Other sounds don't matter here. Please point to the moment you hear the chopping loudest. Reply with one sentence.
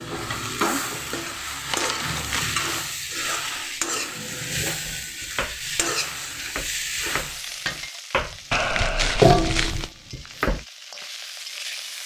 The loudest moment of the chopping is at 9 seconds.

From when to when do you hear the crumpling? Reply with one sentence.
The crumpling can be heard from 1.6 to 2.9 s and from 8.5 to 9.9 s.